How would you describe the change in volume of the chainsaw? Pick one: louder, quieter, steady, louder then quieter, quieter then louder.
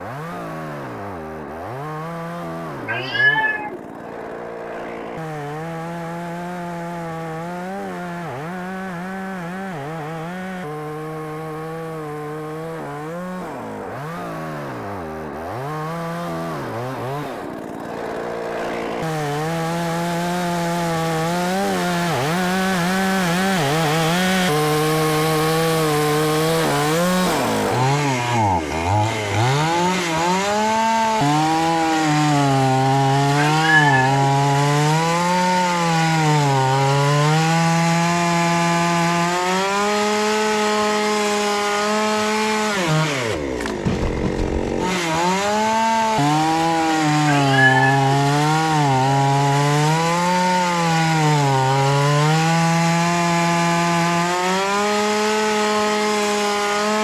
louder.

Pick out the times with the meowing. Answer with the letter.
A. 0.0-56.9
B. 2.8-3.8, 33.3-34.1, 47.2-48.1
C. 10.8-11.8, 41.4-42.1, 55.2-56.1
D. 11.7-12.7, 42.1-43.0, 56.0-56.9
B.